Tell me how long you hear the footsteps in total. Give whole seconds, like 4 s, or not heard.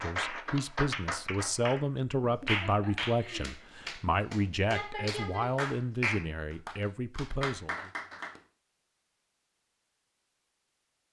not heard.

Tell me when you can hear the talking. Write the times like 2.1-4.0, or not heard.
0.0-7.9.